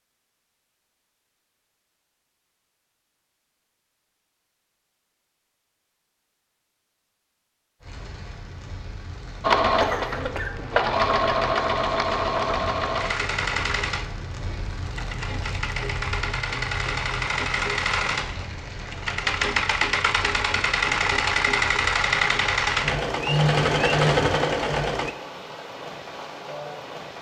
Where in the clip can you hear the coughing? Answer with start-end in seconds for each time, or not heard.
9.8-10.7.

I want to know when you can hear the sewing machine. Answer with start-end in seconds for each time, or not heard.
9.4-25.1.